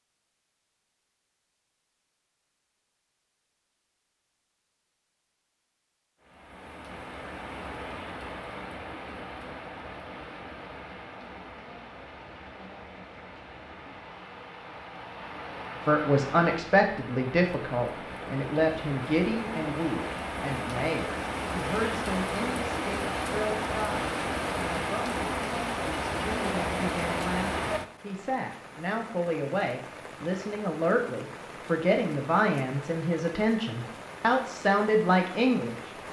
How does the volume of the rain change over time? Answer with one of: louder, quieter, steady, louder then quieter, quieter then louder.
louder then quieter.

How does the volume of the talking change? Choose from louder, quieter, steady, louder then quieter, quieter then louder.
quieter then louder.